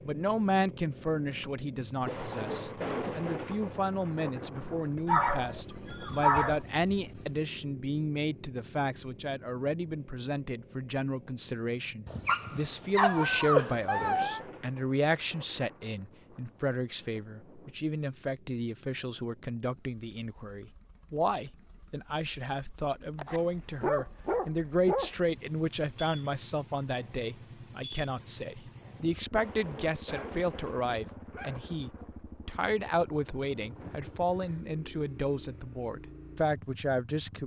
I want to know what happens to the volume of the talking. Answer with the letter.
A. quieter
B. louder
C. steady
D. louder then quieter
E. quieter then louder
C.